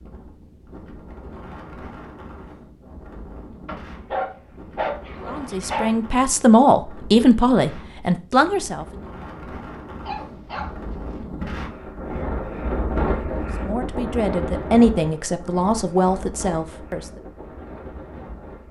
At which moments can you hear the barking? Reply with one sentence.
You can hear the barking from 3.6 to 6.0 s and from 10.0 to 11.2 s.